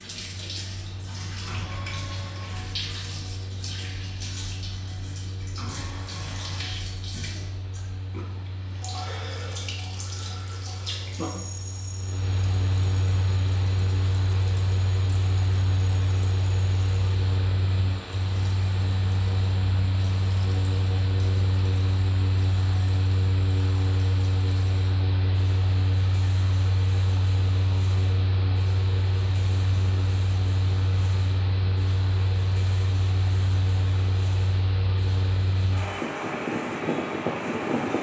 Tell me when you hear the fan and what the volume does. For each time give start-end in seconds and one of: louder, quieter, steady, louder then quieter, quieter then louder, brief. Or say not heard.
0.0-37.9 louder.